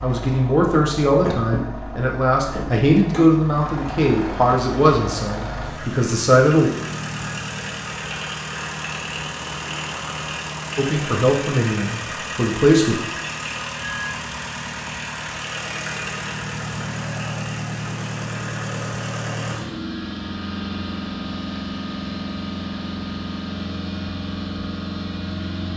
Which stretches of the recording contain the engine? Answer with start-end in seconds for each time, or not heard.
0.0-25.7.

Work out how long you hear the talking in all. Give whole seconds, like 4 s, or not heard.
9 s.